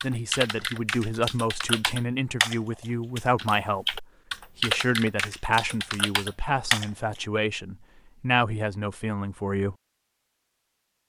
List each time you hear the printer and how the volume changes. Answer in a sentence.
The printer can't be heard in this clip.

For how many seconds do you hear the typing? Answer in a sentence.
The typing can be heard for 7 seconds in total.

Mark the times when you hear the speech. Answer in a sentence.
You can hear the speech from 0.0 to 9.8 s.